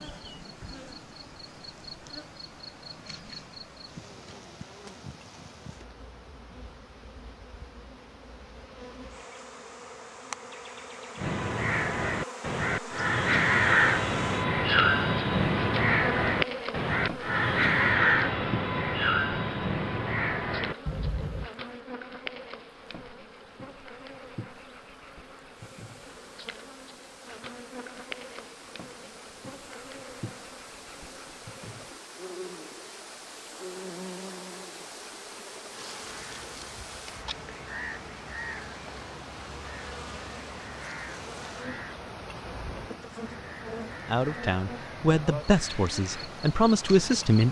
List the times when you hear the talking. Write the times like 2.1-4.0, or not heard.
44.0-47.4.